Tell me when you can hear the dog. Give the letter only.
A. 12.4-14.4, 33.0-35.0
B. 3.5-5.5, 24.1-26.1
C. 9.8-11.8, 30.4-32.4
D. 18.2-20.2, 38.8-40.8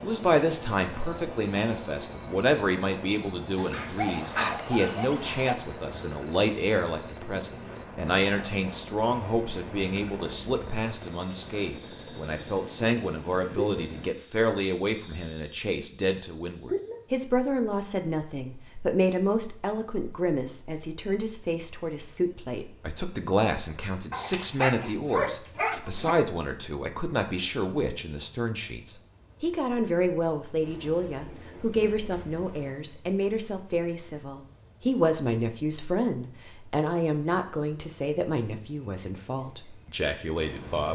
B.